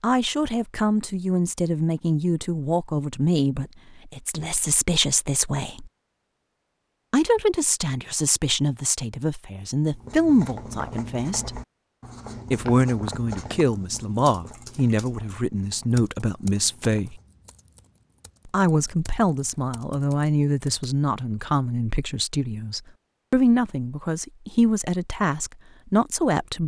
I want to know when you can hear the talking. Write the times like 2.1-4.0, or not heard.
0.0-5.9, 7.1-11.6, 12.5-17.2, 18.4-26.6.